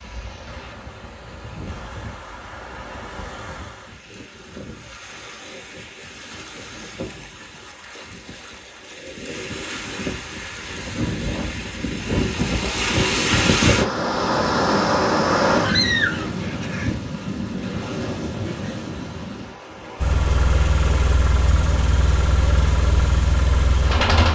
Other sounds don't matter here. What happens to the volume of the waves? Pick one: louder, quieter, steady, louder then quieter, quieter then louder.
louder then quieter.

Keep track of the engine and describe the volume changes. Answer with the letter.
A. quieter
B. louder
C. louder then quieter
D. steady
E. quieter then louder
D.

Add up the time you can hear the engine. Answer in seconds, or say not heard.
4 s.